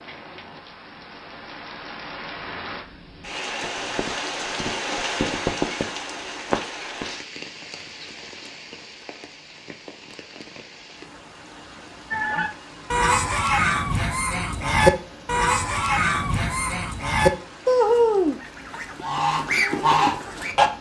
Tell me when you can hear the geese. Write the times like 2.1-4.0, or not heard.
12.1-20.7.